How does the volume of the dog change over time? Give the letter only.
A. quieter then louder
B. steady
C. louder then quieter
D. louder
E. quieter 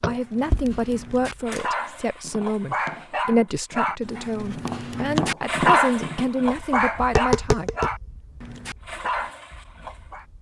C.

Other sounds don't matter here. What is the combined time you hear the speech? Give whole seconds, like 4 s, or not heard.
8 s.